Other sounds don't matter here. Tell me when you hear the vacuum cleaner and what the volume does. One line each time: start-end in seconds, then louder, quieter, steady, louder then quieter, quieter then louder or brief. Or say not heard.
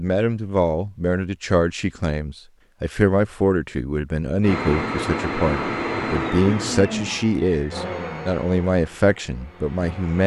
4.4-10.2 quieter.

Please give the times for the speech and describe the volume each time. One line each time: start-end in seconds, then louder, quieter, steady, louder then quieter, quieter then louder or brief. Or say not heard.
0.0-10.2 steady.